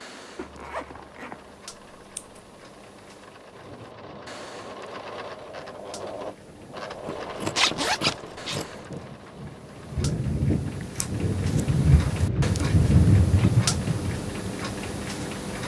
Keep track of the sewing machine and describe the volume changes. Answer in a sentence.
The loudness of the sewing machine goes up, then down.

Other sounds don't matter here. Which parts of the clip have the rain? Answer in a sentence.
You can hear the rain from 3.5 to 15.6 s.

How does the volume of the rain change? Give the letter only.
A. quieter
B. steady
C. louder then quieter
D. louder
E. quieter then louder
D.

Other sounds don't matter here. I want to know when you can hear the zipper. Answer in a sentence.
The zipper can be heard from 0.3 to 1.6 s, from 7.5 to 8.6 s and from 13.2 to 13.7 s.